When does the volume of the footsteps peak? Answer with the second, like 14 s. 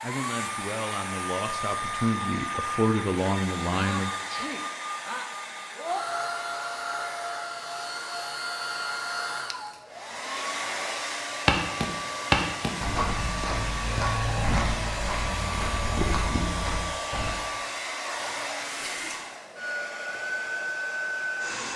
12 s.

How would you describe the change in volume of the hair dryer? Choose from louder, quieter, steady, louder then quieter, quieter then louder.
steady.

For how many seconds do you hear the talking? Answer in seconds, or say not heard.
4 s.